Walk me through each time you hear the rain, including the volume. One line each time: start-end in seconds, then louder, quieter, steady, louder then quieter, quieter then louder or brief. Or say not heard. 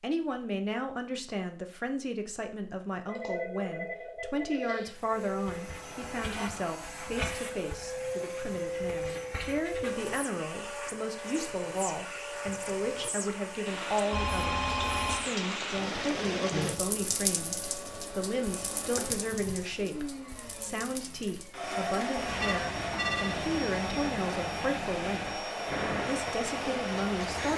13.7-27.5 quieter then louder.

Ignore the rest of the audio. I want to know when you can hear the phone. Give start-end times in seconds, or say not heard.
3.0-5.0, 14.1-15.2, 22.4-23.4.